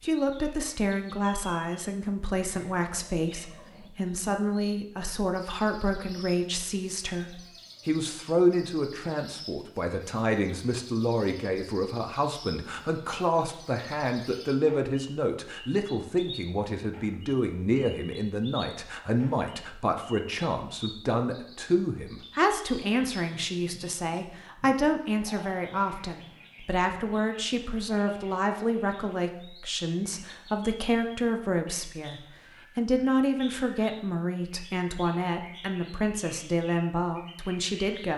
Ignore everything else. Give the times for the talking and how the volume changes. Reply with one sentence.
The talking can be heard from 0.0 to 38.1 s, at a steady volume.